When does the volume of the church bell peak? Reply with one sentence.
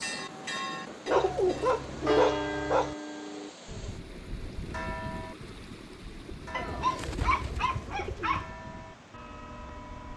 The volume of the church bell peaks at 2 seconds.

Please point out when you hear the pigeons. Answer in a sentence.
The pigeons can be heard from 1.1 to 2.2 s and from 6.7 to 8.5 s.